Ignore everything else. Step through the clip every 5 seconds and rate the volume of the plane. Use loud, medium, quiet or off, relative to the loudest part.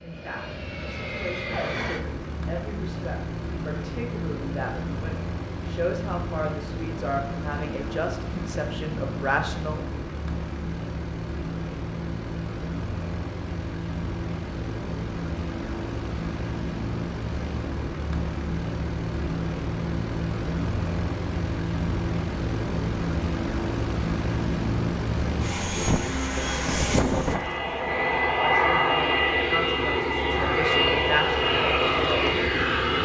medium, medium, medium, medium, medium, loud, loud.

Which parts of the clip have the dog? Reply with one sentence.
You can't hear the dog here.